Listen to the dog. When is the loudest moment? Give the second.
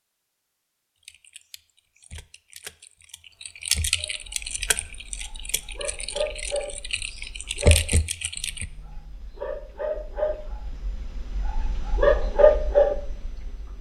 13 s.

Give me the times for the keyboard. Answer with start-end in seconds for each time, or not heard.
1.1-8.7.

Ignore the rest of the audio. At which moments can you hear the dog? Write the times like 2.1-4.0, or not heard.
4.0-13.7.